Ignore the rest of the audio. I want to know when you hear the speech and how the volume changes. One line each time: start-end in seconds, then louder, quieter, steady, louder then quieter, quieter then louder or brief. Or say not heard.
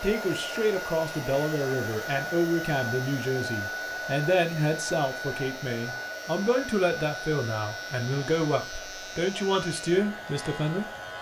0.0-10.8 steady.